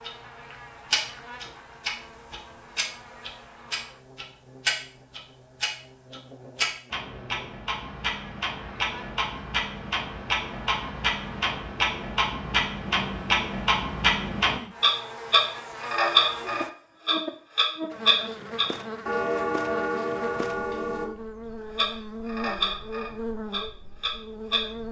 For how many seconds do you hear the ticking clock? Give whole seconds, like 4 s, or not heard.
24 s.